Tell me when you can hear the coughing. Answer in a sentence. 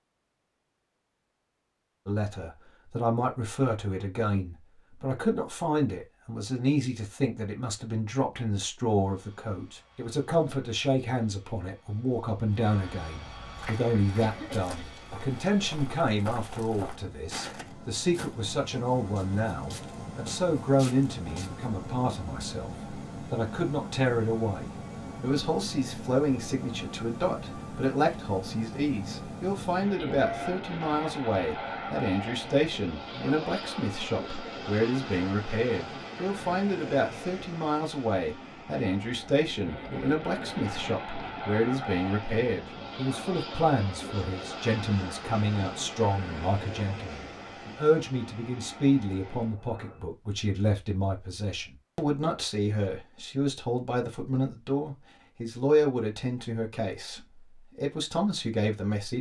You can hear the coughing from 14.2 to 15.3 s and from 30.1 to 30.6 s.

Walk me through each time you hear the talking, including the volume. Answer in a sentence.
The talking can be heard from 2.0 to 59.1 s, at a steady volume.